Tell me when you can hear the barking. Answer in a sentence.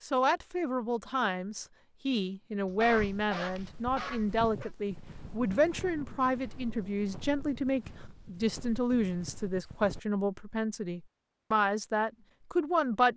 You can hear the barking from 2.6 to 4.7 s.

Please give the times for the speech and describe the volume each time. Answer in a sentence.
The speech can be heard from 0.0 to 13.1 s, at a steady volume.